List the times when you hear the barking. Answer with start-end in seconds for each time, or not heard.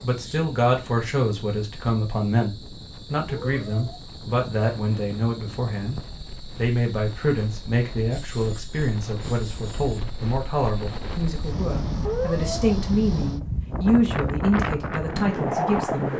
not heard.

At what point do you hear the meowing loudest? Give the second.
12 s.